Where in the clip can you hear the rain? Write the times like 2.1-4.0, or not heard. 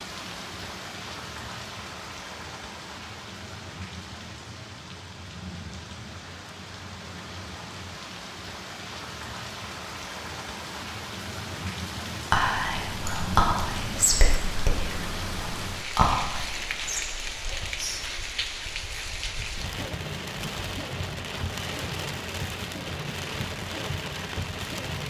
0.0-25.0.